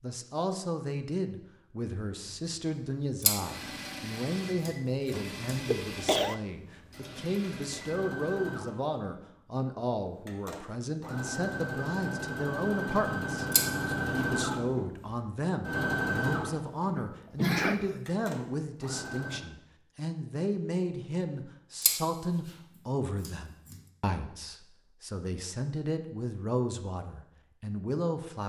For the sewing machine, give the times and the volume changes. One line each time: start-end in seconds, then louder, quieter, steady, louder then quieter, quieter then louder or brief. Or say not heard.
2.2-19.4 louder.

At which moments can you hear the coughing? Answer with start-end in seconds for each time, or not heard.
5.1-6.3, 16.9-18.0.